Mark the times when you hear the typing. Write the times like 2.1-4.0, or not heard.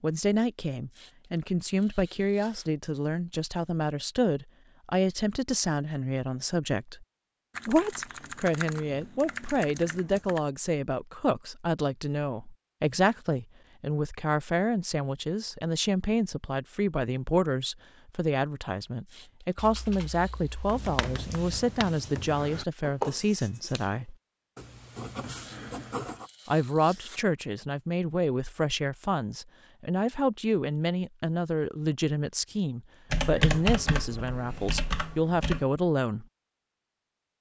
7.5-10.4, 19.6-21.6, 33.1-35.6.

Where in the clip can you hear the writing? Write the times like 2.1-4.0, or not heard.
20.6-26.3.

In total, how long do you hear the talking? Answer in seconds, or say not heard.
33 s.